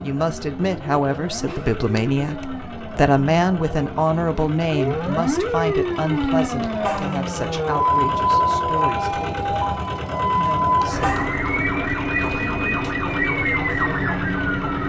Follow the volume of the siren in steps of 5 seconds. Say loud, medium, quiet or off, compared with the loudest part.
medium, loud, loud.